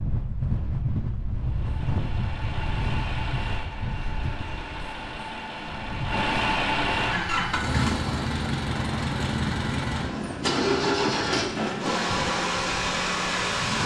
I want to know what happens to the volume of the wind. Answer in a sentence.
The loudness of the wind goes down.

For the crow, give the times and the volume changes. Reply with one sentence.
The crow can't be heard in this clip.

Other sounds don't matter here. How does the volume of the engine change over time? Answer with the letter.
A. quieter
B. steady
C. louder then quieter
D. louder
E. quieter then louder
D.